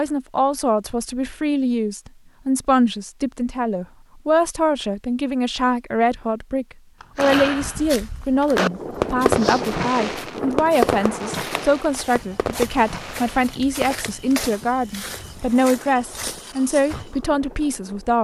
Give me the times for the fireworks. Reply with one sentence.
You can hear the fireworks from 7.0 to 13.9 s.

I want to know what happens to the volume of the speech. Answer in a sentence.
The volume of the speech stays about the same.